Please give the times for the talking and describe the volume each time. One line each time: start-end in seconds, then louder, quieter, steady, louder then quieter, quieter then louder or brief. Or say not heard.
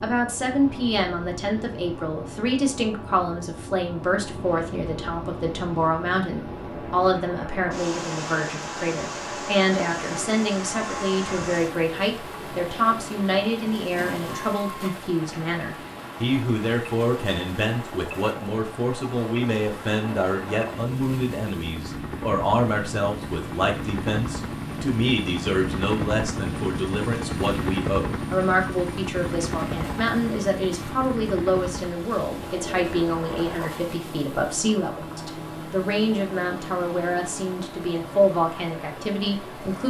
0.0-39.8 steady.